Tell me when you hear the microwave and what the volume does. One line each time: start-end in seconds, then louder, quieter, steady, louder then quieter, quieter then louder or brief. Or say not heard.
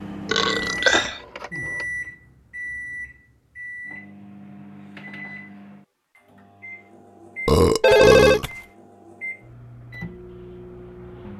0.0-11.3 quieter.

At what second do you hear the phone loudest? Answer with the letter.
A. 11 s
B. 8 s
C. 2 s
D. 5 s
B.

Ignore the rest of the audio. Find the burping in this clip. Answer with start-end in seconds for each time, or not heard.
0.2-1.2, 7.5-8.4.